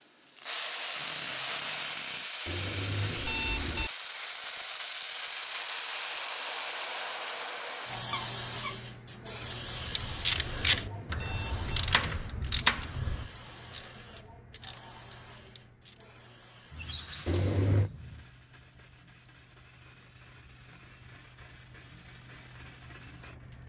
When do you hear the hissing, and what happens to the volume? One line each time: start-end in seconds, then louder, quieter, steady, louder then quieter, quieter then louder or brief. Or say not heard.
0.0-23.6 quieter.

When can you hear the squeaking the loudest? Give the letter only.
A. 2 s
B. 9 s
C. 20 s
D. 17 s
D.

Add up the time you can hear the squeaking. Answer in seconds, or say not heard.
4 s.